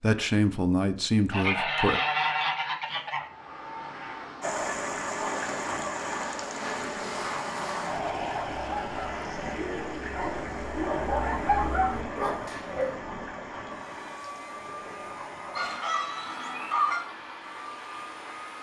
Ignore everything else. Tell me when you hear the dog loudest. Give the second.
12 s.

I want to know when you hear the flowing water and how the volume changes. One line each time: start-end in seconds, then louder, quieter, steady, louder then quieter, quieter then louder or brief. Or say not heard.
4.4-18.5 quieter.